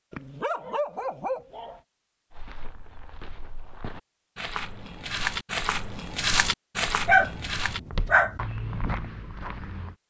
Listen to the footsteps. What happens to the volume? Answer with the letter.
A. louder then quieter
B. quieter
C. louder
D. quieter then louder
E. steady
A.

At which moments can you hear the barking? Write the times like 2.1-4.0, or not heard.
0.1-1.8, 7.0-8.4.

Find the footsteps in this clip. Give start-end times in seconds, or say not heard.
2.3-9.9.